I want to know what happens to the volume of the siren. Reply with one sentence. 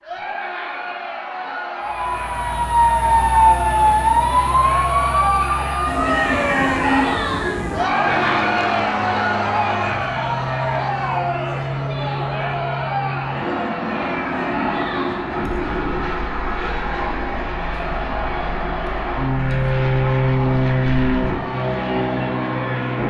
The volume of the siren goes down.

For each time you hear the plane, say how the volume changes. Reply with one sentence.
You can hear the plane from 8.0 to 23.0 s, getting louder.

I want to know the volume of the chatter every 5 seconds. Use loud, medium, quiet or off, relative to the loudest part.
medium, loud, loud, quiet, medium.